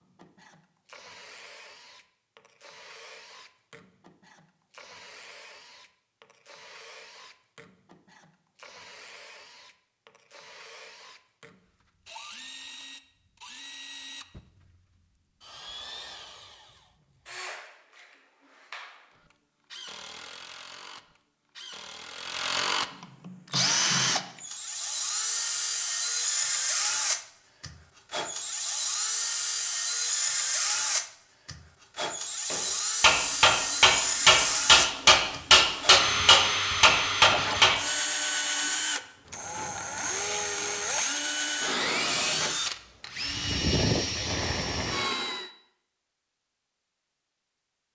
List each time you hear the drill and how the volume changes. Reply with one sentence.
You can hear the drill from 0.0 to 45.5 s, getting louder.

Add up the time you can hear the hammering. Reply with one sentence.
The hammering can be heard for 5 seconds in total.